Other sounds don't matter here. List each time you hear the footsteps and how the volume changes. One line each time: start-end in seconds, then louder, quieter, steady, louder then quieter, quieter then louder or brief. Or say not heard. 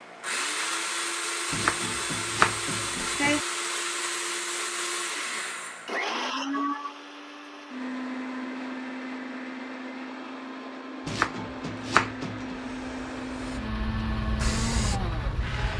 not heard.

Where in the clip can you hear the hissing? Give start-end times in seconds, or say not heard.
12.4-15.7.